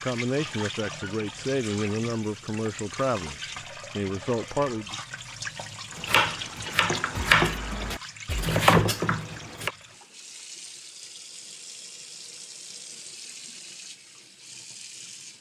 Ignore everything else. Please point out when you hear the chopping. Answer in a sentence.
The chopping can be heard from 6.0 to 9.7 s.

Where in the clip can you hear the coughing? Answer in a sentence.
You can't hear the coughing here.